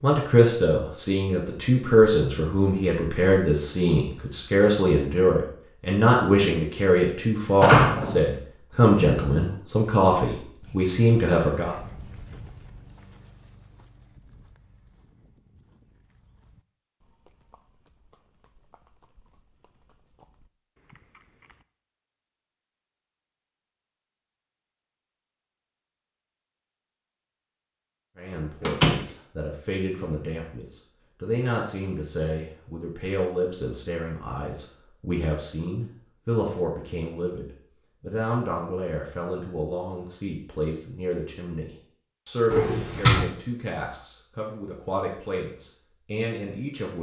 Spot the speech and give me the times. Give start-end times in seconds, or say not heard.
0.0-11.8, 28.1-46.9.